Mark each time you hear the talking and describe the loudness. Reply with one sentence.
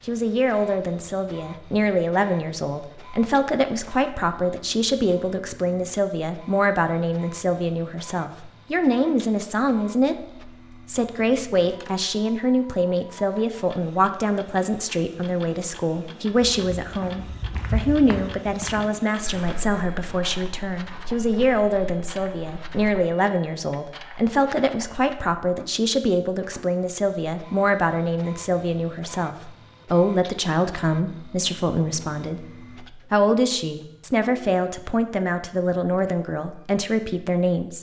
The talking can be heard from 0.1 to 37.7 s, at a steady volume.